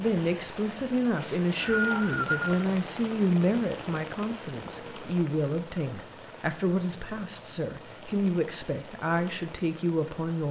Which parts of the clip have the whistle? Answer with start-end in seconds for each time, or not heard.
1.2-2.5.